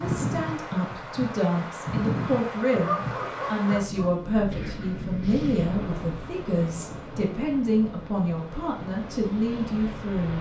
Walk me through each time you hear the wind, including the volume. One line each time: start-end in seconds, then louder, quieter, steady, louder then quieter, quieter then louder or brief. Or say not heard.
0.0-10.3 quieter.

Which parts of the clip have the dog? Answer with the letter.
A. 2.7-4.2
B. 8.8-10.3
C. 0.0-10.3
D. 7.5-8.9
A.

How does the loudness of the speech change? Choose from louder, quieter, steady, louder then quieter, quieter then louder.
steady.